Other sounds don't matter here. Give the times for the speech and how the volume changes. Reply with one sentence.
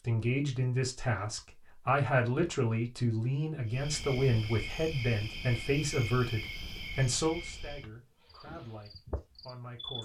You can hear the speech from 0.1 to 9.9 s, getting quieter.